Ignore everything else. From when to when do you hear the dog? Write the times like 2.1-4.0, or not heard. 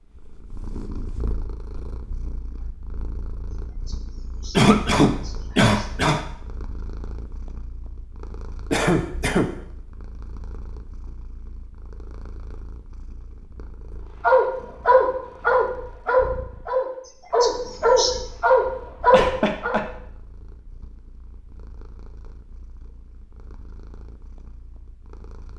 14.2-19.8.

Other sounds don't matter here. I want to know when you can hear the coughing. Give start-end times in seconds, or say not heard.
4.5-6.2, 8.7-9.5, 18.6-19.8.